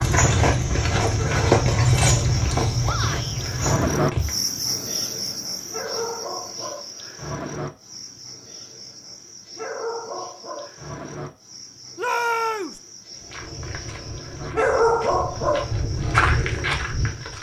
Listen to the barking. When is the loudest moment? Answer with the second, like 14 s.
15 s.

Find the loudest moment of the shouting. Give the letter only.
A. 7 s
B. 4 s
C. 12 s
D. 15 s
C.